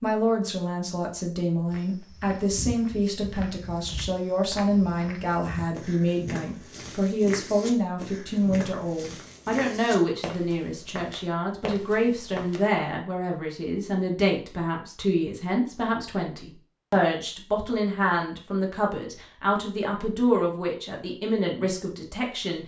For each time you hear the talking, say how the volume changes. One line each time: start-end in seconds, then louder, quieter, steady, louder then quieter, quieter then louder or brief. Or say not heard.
0.0-22.6 steady.